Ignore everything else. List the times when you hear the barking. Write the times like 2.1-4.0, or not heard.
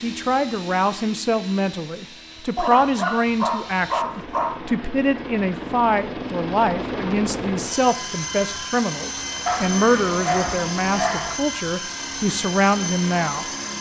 2.5-4.5, 9.4-11.3.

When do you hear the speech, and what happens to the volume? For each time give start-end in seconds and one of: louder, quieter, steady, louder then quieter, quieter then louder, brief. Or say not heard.
0.0-13.5 steady.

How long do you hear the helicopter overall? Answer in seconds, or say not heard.
14 s.